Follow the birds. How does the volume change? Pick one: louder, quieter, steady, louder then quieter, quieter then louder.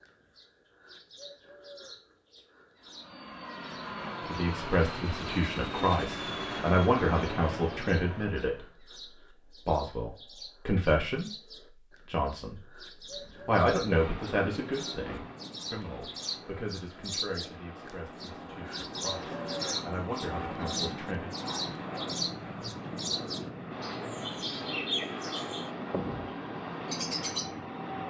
louder.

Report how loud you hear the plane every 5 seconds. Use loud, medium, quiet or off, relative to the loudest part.
loud, loud, medium, medium, loud, loud.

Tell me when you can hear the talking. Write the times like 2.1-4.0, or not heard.
4.2-8.8, 9.7-11.3, 12.1-12.8, 13.4-21.3.